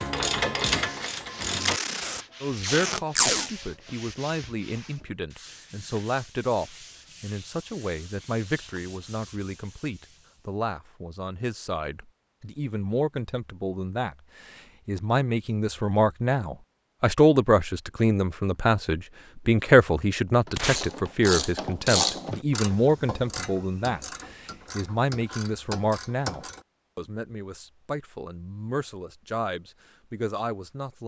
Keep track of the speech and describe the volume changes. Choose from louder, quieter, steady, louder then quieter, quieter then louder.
louder then quieter.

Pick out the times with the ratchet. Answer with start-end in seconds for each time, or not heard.
0.0-1.8, 20.4-26.6.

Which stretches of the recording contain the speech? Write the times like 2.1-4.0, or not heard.
2.4-31.0.